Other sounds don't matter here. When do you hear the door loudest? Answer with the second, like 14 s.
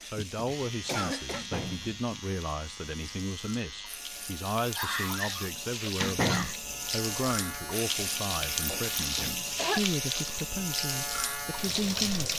6 s.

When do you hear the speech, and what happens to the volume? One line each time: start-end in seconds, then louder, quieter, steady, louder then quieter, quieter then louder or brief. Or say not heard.
0.0-12.3 steady.